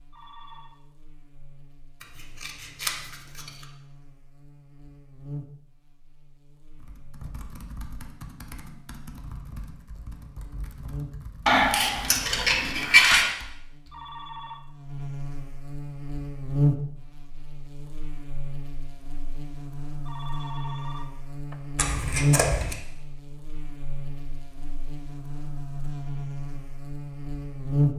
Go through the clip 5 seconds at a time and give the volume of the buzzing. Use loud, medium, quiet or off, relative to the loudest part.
quiet, quiet, quiet, loud, loud, loud.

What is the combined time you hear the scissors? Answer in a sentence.
You can hear the scissors for 4 seconds altogether.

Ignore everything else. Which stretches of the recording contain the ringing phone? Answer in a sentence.
The ringing phone can be heard from 0.1 to 0.8 s, from 13.9 to 14.6 s and from 20.1 to 21.6 s.